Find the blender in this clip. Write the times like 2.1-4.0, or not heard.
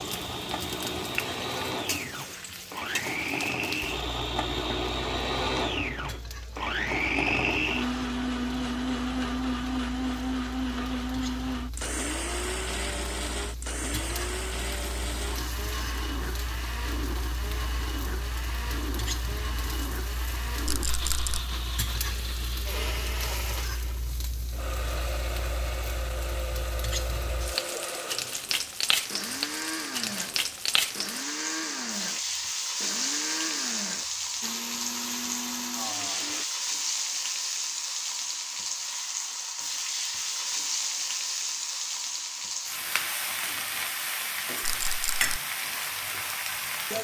0.0-36.5.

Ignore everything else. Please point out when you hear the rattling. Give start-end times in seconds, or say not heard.
20.6-21.4, 44.6-45.4.